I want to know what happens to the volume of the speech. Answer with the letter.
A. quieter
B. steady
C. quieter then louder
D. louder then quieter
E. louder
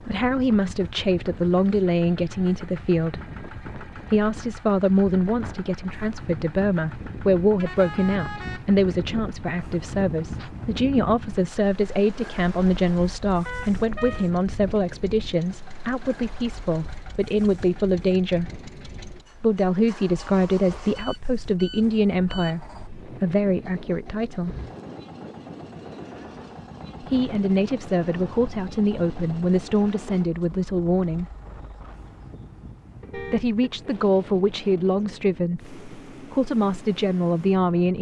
B.